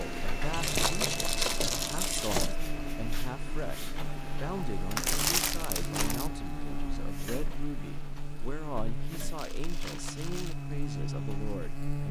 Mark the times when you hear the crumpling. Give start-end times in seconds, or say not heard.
0.5-2.5, 5.0-6.3, 9.3-10.6.